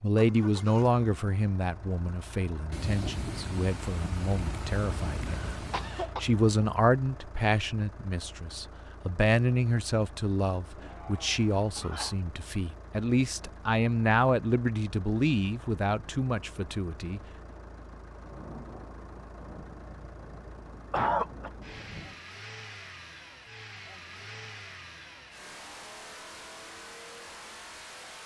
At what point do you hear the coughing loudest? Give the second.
21 s.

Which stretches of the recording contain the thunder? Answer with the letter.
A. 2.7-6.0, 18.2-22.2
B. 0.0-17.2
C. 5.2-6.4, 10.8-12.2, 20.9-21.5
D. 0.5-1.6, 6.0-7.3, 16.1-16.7
A.